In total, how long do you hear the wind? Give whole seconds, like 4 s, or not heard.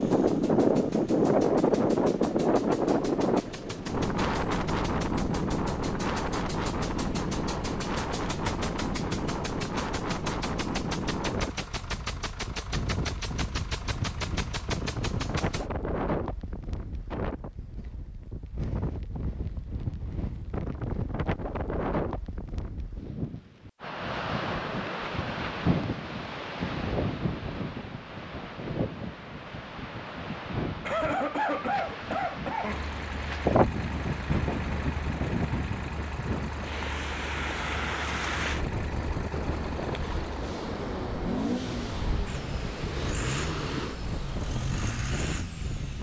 46 s.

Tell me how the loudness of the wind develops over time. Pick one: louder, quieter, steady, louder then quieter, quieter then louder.
quieter.